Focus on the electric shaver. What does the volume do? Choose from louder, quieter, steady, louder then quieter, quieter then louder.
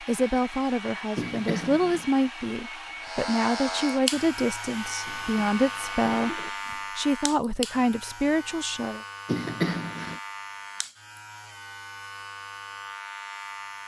quieter.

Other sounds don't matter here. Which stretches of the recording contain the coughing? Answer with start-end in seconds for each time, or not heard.
1.1-2.2, 5.0-6.5, 9.2-10.2.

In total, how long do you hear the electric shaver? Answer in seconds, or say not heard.
11 s.